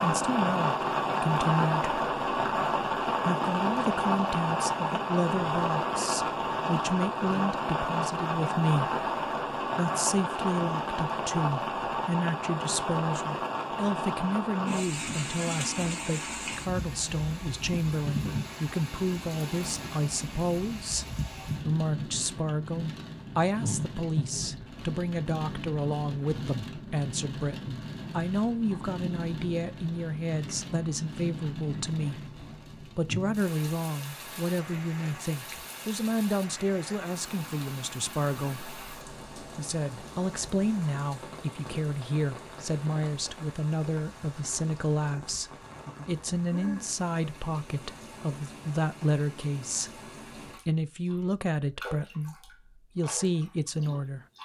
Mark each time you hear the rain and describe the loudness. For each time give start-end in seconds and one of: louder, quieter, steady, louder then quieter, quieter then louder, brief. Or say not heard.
0.0-54.4 quieter.